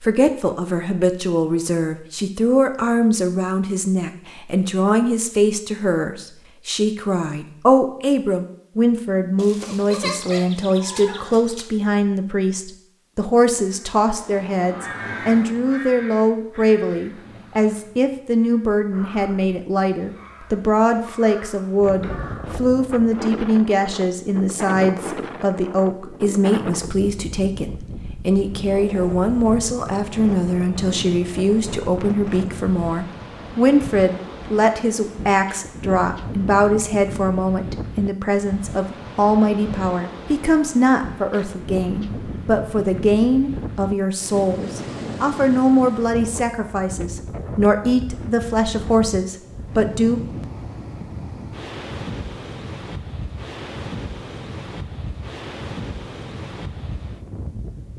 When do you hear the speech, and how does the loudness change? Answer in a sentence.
The speech can be heard from 0.0 to 50.2 s, at a steady volume.